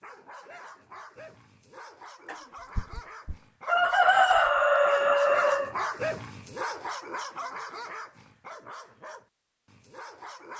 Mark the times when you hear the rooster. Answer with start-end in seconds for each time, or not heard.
2.2-5.8.